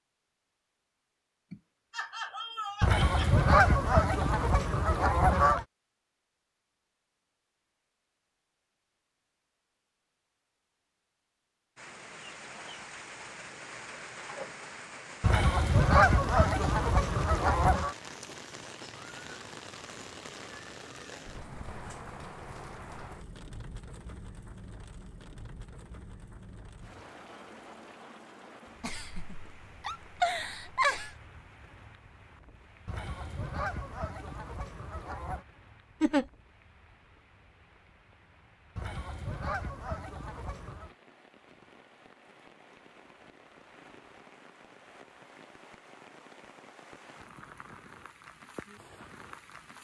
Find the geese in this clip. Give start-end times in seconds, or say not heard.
2.8-5.7, 15.2-17.9, 32.9-35.5, 38.8-40.9.